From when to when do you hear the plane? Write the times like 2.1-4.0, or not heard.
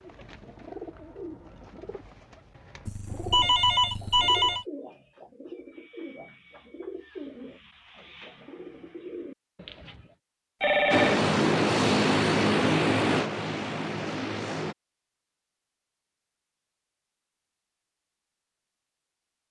10.9-14.8.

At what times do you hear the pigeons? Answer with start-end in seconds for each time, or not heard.
0.0-10.2.